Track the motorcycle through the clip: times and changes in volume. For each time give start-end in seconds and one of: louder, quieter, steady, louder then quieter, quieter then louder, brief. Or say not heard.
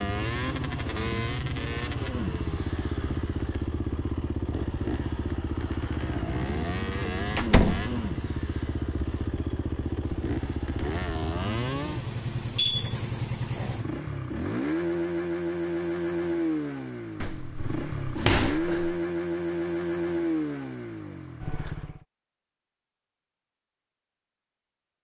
0.0-22.1 steady.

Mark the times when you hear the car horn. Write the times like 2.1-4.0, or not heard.
not heard.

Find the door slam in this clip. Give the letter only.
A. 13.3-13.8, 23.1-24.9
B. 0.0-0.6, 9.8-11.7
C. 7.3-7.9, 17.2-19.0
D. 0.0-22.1
C.